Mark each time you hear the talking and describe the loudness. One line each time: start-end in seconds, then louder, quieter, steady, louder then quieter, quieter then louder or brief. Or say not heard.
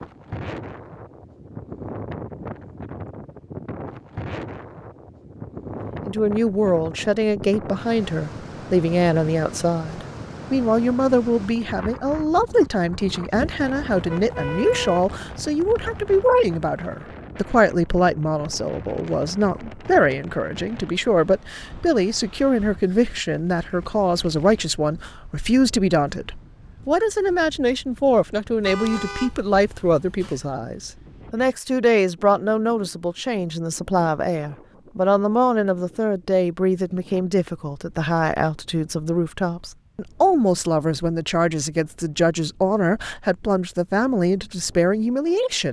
6.0-45.6 steady.